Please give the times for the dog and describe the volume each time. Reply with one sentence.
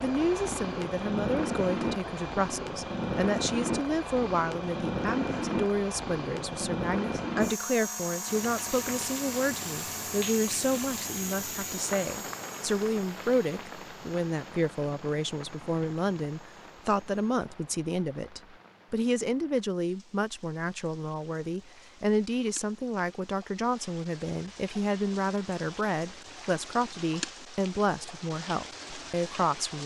The dog can't be heard in this clip.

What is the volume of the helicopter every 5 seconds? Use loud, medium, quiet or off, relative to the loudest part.
loud, loud, medium, quiet, off, off.